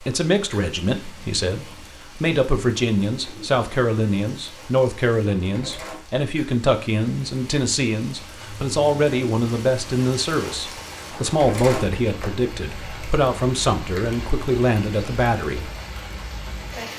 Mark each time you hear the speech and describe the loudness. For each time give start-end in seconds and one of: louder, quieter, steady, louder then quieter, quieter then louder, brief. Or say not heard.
0.0-15.7 steady.